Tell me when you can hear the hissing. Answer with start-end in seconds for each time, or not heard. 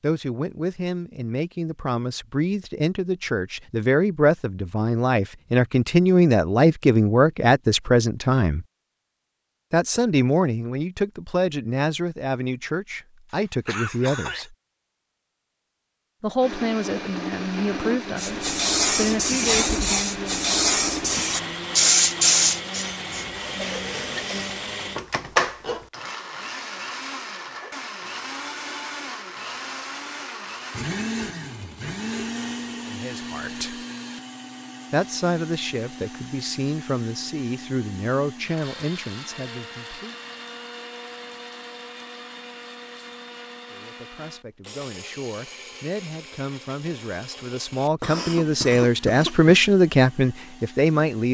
18.1-24.6.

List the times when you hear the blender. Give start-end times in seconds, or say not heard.
16.4-51.2.